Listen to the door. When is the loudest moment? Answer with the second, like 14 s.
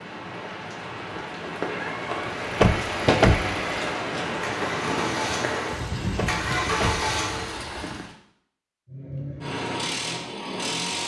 3 s.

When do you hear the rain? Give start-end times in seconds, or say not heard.
0.0-8.2.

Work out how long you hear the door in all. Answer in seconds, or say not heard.
2 s.